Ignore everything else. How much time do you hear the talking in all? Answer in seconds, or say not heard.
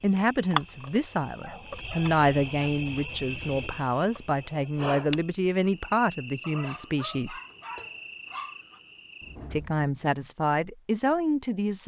10 s.